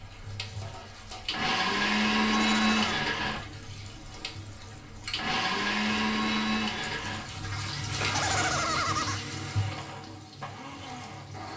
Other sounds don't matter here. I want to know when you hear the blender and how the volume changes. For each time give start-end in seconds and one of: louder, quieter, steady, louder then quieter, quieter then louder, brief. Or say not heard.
0.0-11.5 quieter.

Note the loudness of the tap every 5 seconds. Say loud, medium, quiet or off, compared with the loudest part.
medium, loud, medium.